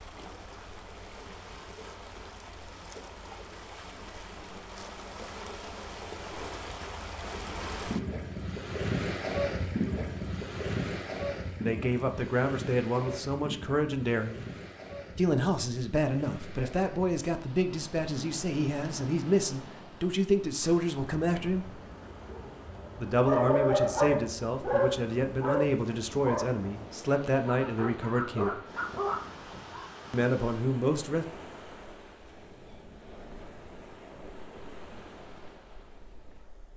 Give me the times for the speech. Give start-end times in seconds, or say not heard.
11.6-14.4, 15.2-21.8, 22.9-28.6, 30.1-31.2.